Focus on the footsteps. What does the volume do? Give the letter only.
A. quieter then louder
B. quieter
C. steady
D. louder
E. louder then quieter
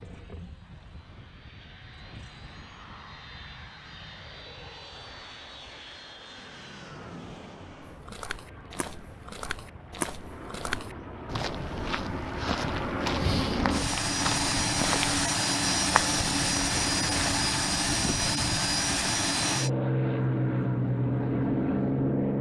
D.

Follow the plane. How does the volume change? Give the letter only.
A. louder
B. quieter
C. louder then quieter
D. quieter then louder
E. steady
A.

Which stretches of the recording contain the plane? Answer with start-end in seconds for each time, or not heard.
0.0-22.3.